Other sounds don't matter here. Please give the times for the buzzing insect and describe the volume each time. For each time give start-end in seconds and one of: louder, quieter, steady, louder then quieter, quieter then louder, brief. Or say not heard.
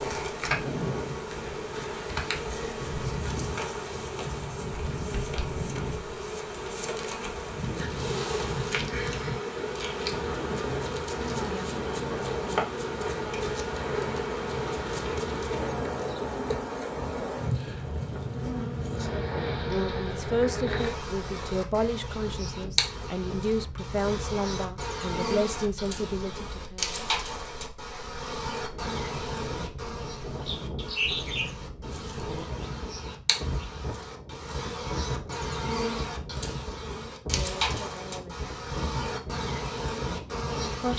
0.0-40.9 steady.